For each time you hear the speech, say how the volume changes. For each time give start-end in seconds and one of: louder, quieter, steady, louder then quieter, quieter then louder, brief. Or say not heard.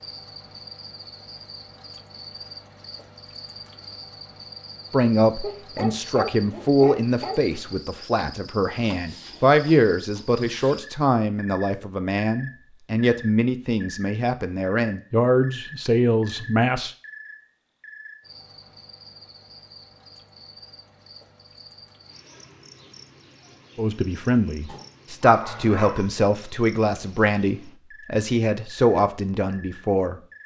4.9-16.9 steady
23.8-30.2 steady.